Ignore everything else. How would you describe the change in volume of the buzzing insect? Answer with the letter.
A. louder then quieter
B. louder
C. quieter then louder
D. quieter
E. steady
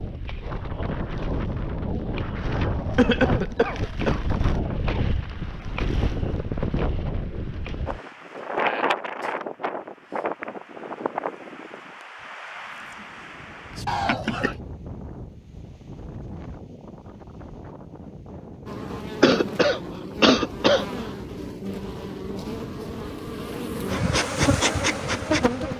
B.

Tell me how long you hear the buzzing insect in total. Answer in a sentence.
You can hear the buzzing insect for 7 seconds altogether.